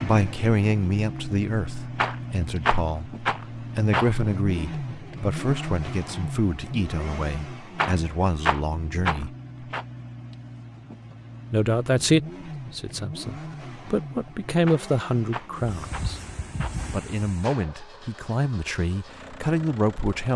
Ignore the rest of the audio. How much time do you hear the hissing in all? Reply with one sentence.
You can hear the hissing for 2 seconds altogether.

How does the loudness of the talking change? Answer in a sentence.
The volume of the talking stays about the same.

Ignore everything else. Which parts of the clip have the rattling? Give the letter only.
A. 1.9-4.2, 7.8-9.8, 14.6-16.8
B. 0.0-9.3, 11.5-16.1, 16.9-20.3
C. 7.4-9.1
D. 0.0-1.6
A.